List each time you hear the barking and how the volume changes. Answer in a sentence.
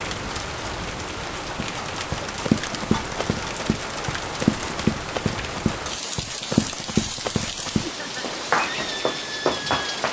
The barking can't be heard in this clip.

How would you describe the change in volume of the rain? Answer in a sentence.
The loudness of the rain stays about the same.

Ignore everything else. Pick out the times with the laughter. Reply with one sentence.
The laughter can be heard from 7.8 to 8.3 s.